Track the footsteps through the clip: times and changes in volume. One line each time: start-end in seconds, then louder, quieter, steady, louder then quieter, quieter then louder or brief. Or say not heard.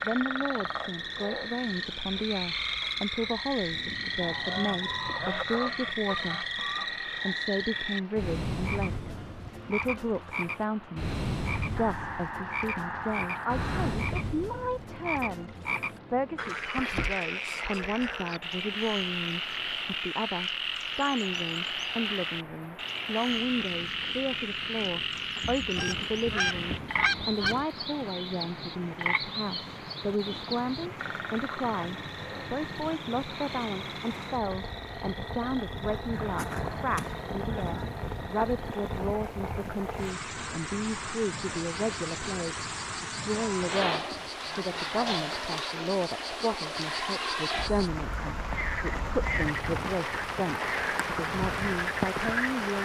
not heard.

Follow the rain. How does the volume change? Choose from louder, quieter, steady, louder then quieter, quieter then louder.
louder.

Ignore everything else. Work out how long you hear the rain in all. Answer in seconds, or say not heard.
53 s.